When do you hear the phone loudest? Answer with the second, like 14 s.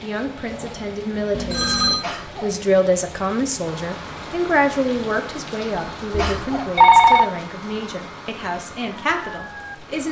7 s.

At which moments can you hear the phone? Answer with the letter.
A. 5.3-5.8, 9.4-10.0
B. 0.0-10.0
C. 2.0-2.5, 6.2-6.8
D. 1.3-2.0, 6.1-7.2
D.